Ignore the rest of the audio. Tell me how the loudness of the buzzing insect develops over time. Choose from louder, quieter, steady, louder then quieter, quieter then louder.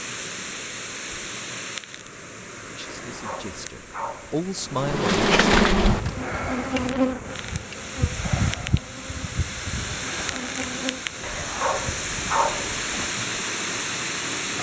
quieter.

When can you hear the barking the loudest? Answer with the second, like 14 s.
12 s.